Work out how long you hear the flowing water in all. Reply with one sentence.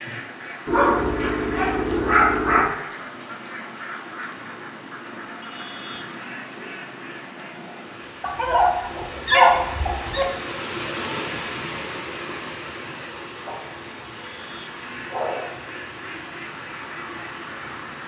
You can hear the flowing water for 18 seconds altogether.